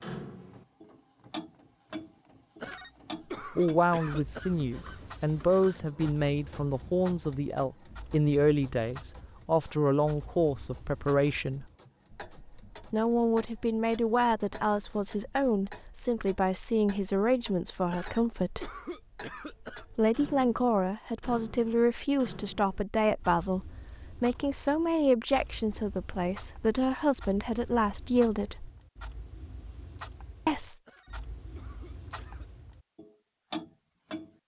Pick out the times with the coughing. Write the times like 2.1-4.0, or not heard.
2.6-4.5, 17.9-19.9, 30.9-32.5.